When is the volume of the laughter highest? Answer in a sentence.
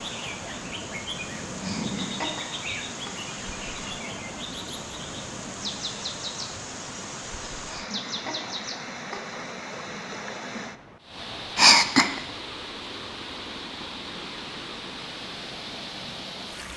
The loudest moment of the laughter is at 12 seconds.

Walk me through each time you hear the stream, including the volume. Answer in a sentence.
The stream can be heard from 0.0 to 16.7 s, at a steady volume.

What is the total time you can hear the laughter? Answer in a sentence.
The laughter can be heard for 4 seconds in total.